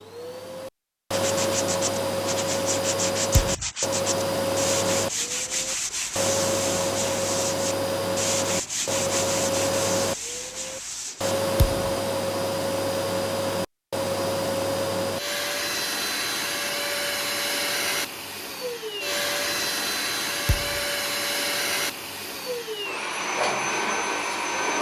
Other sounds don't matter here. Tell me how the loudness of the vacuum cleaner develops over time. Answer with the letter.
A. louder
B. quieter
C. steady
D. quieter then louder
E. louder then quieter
C.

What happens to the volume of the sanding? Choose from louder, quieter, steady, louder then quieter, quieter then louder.
steady.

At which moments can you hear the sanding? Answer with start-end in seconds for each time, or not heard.
1.1-11.3.